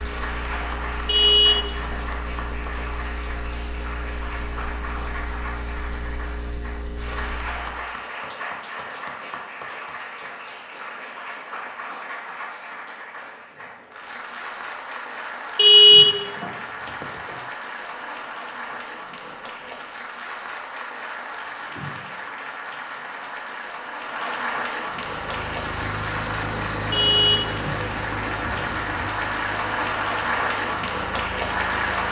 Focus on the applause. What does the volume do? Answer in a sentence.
The volume of the applause goes up.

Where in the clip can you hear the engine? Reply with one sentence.
The engine can be heard from 0.0 to 7.8 s and from 24.9 to 32.0 s.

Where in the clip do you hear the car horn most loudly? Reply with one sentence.
The volume of the car horn peaks at 16 seconds.